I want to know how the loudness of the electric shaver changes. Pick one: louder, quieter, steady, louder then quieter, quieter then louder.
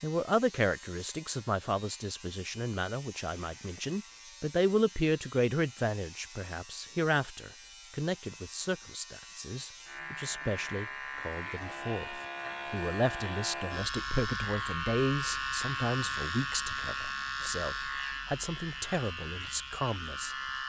louder.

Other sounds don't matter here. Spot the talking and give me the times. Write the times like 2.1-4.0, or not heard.
0.0-20.4.